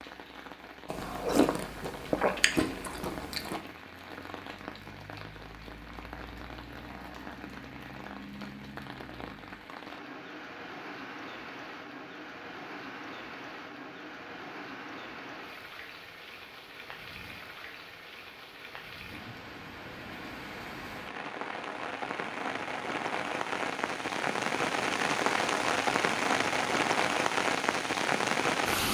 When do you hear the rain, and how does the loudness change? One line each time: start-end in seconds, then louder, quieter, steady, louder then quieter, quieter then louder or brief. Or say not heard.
0.0-28.9 louder.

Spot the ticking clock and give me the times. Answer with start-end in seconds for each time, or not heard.
not heard.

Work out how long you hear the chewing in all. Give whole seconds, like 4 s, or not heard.
3 s.